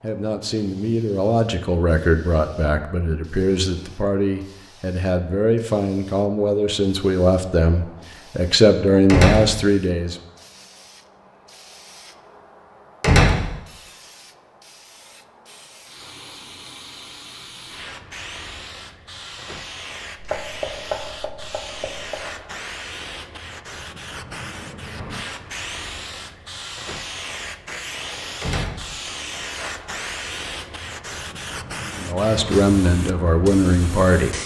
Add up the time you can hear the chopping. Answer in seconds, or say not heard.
2 s.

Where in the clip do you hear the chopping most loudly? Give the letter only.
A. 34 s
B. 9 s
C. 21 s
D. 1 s
C.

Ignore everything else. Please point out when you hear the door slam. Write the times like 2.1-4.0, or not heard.
9.1-9.6, 13.0-13.6, 28.4-28.9.